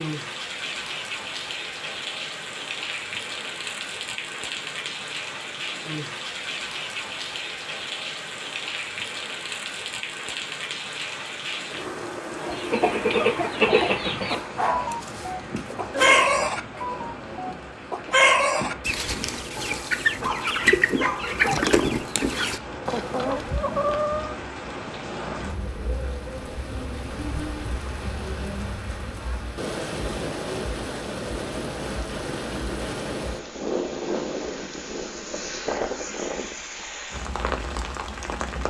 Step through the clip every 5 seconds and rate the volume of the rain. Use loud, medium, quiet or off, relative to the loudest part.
loud, loud, loud, medium, medium, loud, loud, loud.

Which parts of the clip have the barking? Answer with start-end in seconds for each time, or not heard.
14.2-16.3, 19.6-21.6.